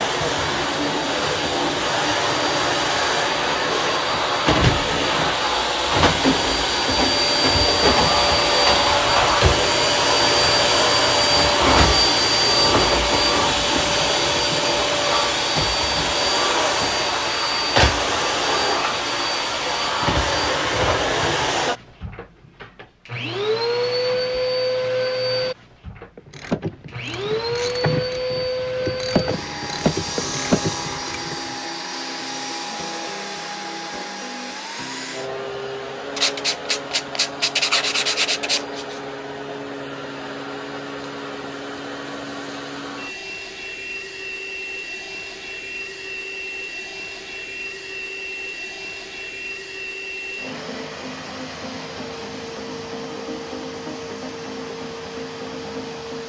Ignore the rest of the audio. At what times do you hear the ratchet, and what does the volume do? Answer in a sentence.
The ratchet can be heard from 26.1 to 31.6 s, getting louder.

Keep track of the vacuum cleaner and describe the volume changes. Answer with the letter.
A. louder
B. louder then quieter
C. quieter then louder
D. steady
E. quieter
E.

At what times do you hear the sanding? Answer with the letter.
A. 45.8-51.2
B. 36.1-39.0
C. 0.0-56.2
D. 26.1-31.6
B.